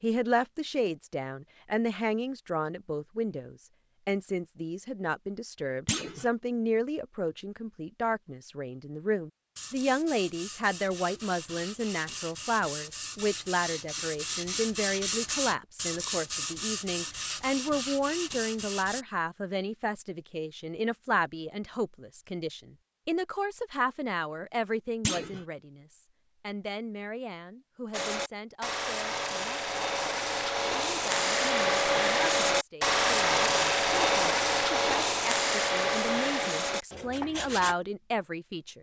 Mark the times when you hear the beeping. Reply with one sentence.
You can't hear the beeping here.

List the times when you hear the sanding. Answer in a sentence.
The sanding can be heard from 9.6 to 19.1 s and from 27.9 to 37.8 s.